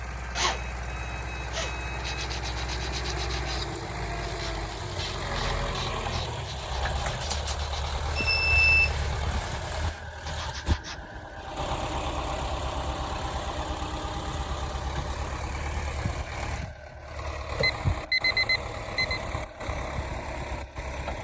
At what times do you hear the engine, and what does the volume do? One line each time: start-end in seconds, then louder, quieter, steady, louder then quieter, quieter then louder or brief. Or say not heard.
0.0-21.1 steady.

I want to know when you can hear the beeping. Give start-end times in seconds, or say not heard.
0.3-2.1, 7.2-8.9, 17.6-19.2.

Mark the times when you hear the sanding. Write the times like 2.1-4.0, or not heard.
1.9-11.0.